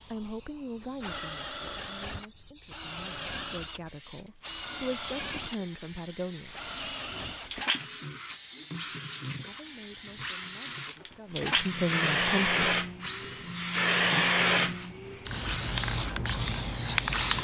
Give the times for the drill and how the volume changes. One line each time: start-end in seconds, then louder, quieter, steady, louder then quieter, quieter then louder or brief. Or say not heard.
0.0-17.3 steady.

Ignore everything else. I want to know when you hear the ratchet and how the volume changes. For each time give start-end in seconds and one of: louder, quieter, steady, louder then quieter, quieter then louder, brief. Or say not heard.
not heard.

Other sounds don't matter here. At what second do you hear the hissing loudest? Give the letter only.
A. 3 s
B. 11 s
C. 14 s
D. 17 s
C.